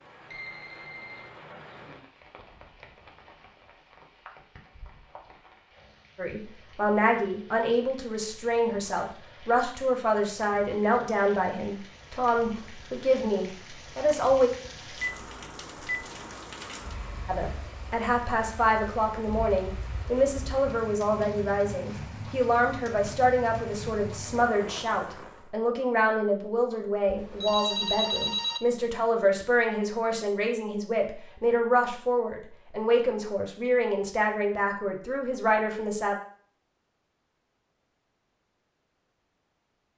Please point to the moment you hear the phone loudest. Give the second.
28 s.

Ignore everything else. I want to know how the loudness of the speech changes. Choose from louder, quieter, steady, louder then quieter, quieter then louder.
steady.